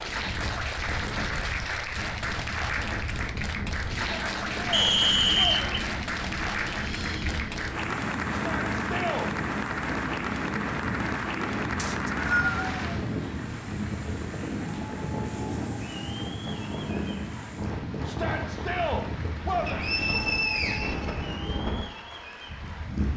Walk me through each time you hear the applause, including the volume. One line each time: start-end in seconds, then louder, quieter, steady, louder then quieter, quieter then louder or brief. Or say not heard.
0.0-23.1 quieter.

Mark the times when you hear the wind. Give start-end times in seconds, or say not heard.
0.0-23.1.